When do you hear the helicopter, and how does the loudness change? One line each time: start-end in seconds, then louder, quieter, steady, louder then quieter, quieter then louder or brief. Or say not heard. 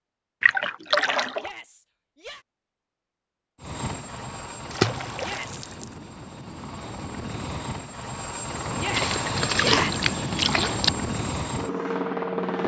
3.6-12.6 louder.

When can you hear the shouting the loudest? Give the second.
10 s.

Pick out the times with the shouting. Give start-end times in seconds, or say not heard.
1.4-2.5, 5.2-6.1, 8.8-10.1.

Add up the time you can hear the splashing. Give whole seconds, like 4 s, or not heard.
4 s.